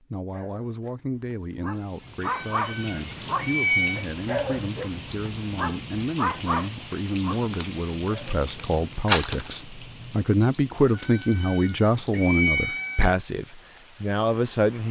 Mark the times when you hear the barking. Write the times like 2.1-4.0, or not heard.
0.3-8.4.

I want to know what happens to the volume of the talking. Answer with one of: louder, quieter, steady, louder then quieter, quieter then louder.
louder.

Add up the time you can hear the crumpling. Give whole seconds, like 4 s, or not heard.
2 s.